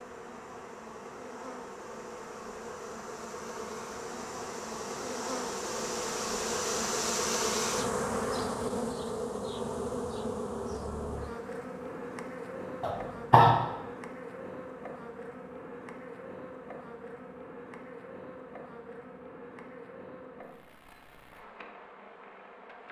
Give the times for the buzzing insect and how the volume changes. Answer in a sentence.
The buzzing insect can be heard from 0.0 to 22.8 s, getting louder then quieter.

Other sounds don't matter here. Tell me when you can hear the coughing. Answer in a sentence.
You can hear the coughing from 12.8 to 13.6 s.